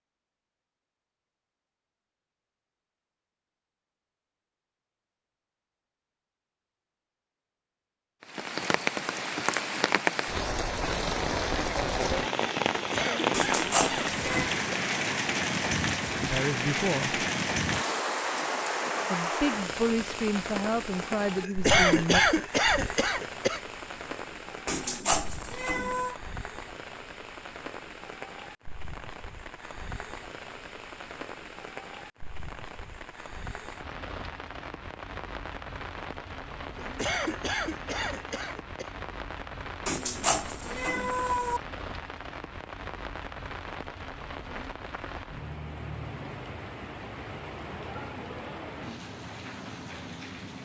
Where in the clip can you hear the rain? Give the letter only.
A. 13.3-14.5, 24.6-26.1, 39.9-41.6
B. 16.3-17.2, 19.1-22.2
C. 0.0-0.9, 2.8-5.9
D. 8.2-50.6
D.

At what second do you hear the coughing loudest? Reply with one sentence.
The volume of the coughing peaks at 22 seconds.